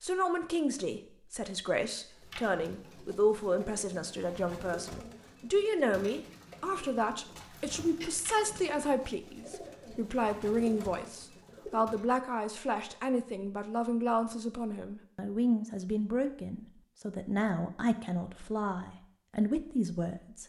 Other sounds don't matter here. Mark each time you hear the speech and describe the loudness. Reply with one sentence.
You can hear the speech from 0.0 to 20.4 s, at a steady volume.